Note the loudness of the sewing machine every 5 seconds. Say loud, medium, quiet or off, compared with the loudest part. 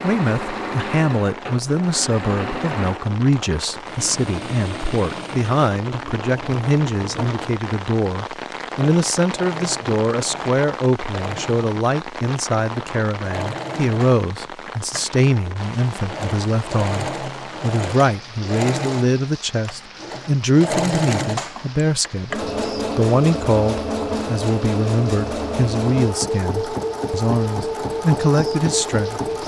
medium, medium, medium, medium, loud, loud.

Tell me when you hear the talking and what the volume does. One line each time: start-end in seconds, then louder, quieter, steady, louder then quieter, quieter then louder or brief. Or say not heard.
0.0-29.4 steady.